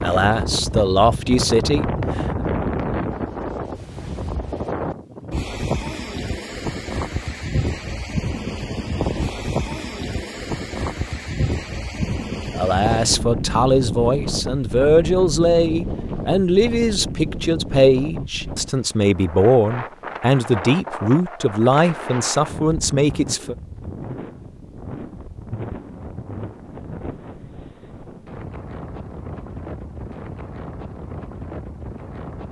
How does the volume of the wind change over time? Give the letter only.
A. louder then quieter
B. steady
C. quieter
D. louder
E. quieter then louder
C.